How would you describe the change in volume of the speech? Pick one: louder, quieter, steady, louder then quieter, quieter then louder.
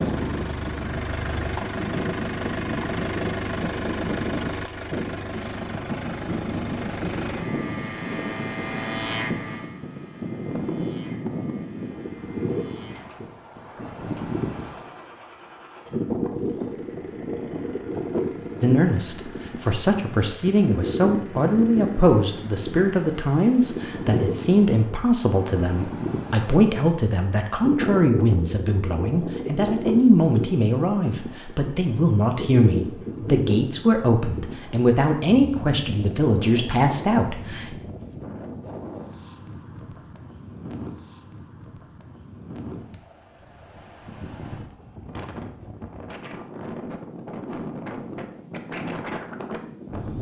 steady.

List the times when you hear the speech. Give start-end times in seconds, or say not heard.
18.6-37.8.